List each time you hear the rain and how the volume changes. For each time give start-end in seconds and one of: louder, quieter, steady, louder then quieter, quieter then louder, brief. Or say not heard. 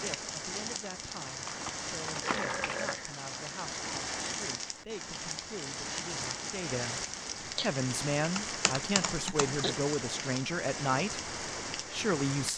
0.0-12.5 steady.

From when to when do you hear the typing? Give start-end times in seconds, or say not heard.
1.4-3.0, 7.5-9.8.